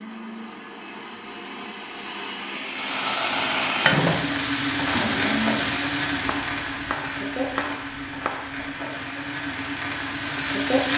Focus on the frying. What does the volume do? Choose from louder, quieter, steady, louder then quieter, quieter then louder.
quieter.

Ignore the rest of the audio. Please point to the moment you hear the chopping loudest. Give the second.
8 s.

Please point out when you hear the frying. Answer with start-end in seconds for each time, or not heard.
2.6-10.9.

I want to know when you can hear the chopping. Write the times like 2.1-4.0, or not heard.
6.2-8.7.